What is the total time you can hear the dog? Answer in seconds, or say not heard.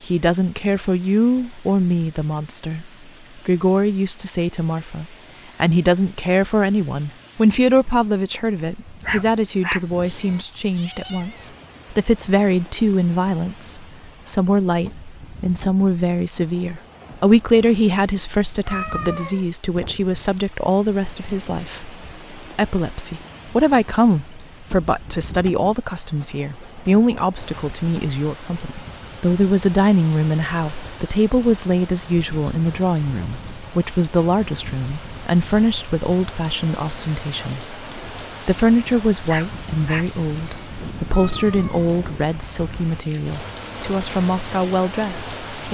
3 s.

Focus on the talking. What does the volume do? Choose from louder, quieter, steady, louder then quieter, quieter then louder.
steady.